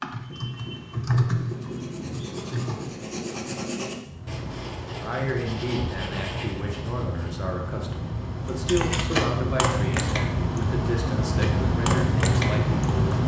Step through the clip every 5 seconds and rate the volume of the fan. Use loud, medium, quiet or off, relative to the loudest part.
quiet, medium, loud.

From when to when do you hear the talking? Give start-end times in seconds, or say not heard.
5.0-13.2.